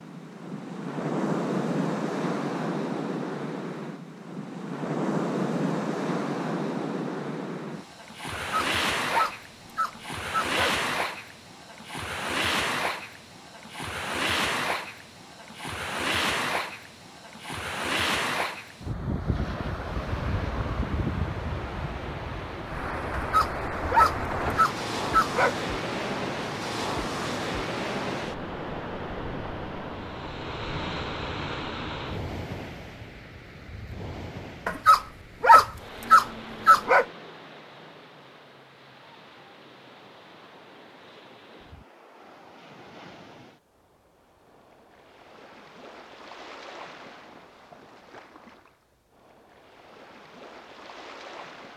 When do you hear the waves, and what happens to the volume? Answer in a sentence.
You can hear the waves from 0.0 to 51.7 s, getting quieter.